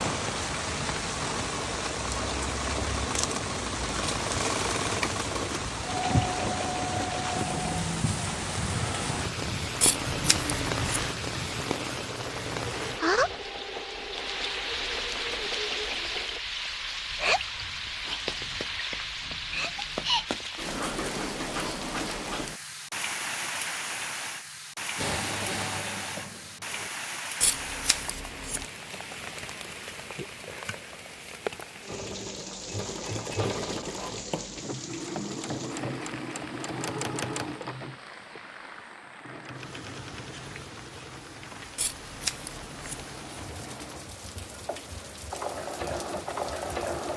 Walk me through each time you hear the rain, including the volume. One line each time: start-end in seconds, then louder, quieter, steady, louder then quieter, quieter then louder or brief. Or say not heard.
0.0-47.1 quieter.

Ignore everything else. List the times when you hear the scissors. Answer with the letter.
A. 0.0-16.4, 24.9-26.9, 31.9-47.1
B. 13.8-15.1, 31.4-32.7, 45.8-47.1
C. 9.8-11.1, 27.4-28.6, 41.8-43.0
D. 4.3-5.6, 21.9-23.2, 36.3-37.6
C.